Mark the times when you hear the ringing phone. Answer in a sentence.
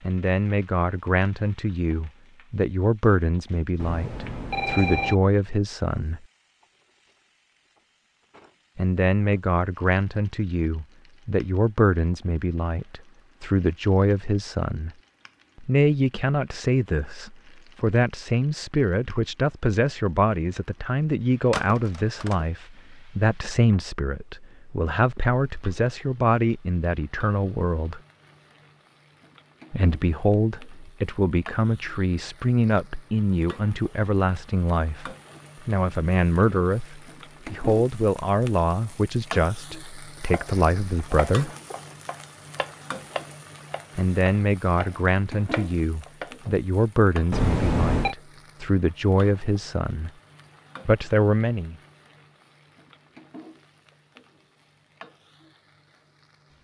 You can hear the ringing phone from 3.8 to 5.2 s, from 21.5 to 22.4 s and from 47.3 to 48.1 s.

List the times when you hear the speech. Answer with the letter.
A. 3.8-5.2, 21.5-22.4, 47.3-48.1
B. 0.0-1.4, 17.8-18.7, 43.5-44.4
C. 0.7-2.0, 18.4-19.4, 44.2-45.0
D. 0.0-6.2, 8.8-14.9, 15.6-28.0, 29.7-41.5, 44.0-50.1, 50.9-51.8
D.